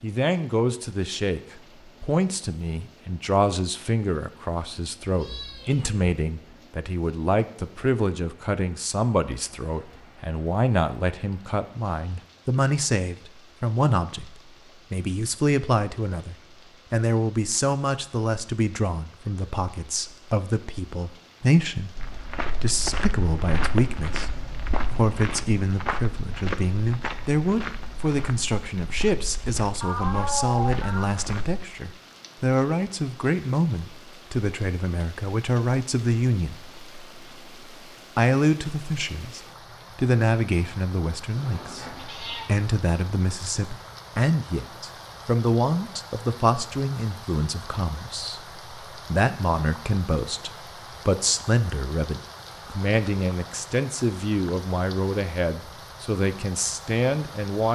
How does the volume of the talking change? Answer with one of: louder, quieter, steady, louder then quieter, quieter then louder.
steady.